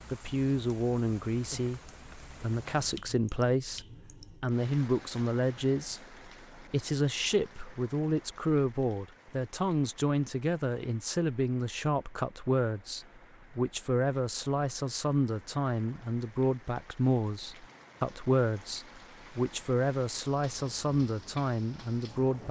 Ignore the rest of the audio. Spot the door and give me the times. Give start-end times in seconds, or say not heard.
not heard.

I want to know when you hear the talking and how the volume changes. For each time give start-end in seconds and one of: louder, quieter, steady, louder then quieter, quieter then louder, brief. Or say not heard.
0.1-22.4 steady.